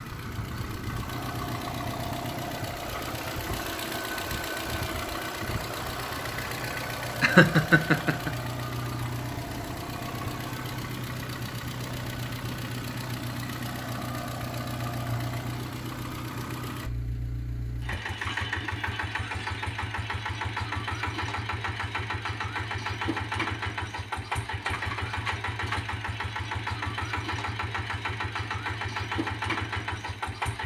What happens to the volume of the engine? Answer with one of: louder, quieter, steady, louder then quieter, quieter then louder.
steady.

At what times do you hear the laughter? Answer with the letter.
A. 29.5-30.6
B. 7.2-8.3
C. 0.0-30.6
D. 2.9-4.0
B.